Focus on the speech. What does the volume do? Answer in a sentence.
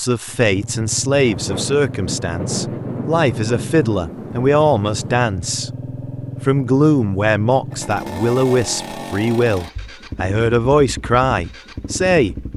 The loudness of the speech stays about the same.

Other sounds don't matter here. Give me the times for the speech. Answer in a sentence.
The speech can be heard from 0.0 to 5.7 s and from 6.5 to 12.3 s.